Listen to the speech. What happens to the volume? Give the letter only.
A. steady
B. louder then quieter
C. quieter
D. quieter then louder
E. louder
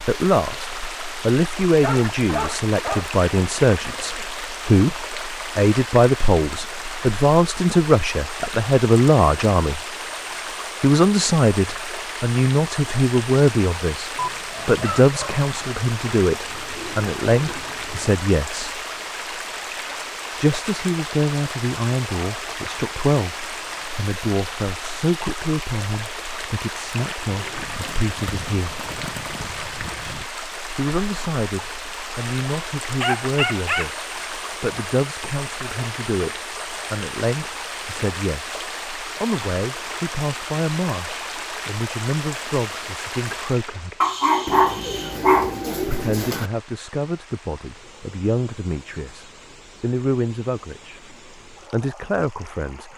C.